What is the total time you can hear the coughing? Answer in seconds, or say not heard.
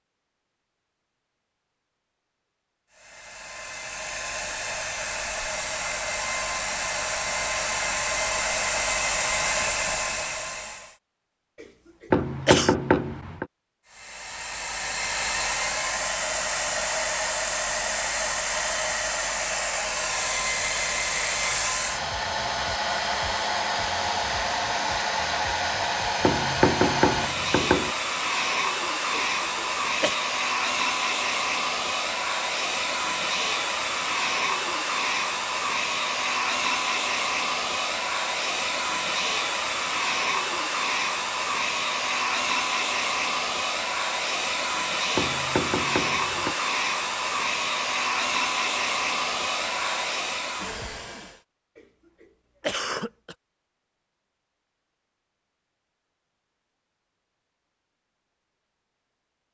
4 s.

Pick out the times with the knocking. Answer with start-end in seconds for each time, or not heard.
12.1-13.4, 26.2-27.9, 45.1-46.5.